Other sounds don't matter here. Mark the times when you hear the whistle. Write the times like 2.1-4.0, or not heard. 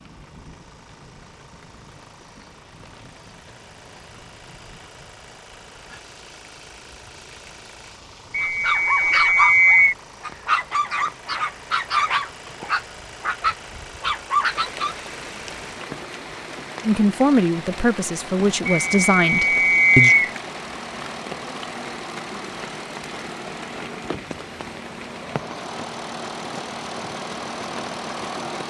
8.3-9.9, 18.6-20.3.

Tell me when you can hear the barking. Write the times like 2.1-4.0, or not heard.
8.4-14.9.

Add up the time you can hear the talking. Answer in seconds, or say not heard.
3 s.